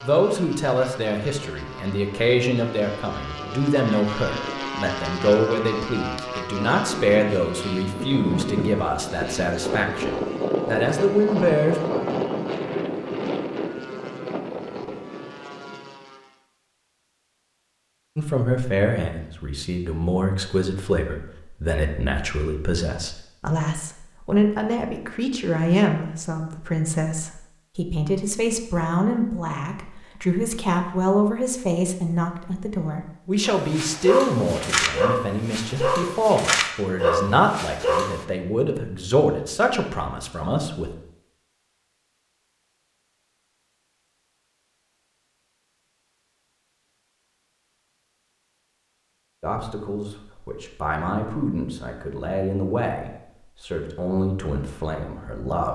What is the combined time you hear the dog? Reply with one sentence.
You can hear the dog for 5 seconds altogether.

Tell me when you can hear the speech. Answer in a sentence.
You can hear the speech from 0.0 to 11.8 s, from 18.1 to 40.9 s and from 49.4 to 55.7 s.